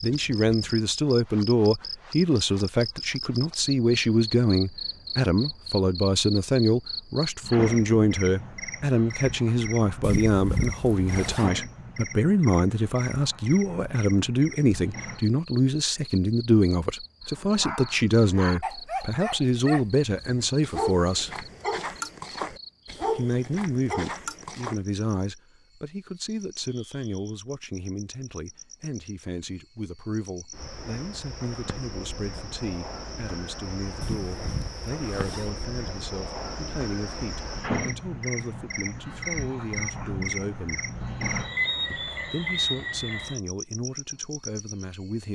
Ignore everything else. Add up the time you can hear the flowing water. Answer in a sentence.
You can't hear the flowing water here.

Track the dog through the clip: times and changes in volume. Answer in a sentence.
The dog can be heard from 17.4 to 24.8 s, at a steady volume.